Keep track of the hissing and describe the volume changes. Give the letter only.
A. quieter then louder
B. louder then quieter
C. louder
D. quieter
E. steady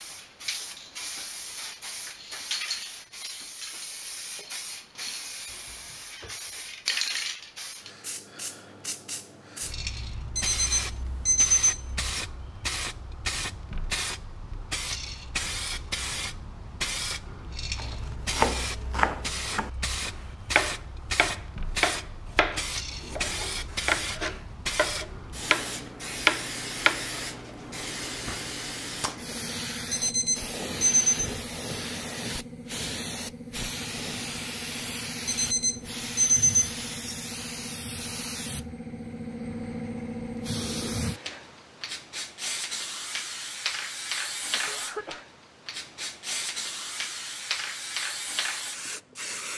E.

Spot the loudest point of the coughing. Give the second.
45 s.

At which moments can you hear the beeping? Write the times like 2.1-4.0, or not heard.
10.3-12.2, 29.9-31.1, 35.2-37.1.